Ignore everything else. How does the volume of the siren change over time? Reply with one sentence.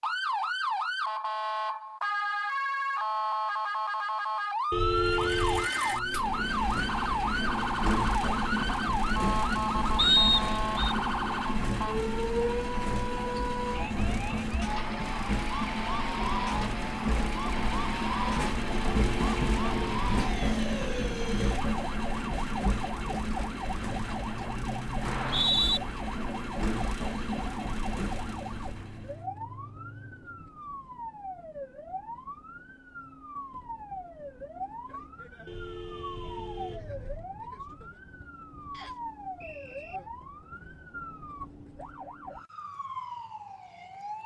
The loudness of the siren goes down.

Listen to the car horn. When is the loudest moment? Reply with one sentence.
The loudest moment of the car horn is at 5 seconds.